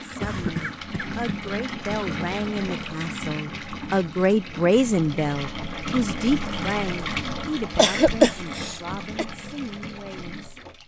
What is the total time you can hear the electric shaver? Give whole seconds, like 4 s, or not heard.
not heard.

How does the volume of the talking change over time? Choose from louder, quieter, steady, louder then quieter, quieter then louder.
louder then quieter.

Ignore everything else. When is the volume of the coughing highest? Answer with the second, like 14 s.
8 s.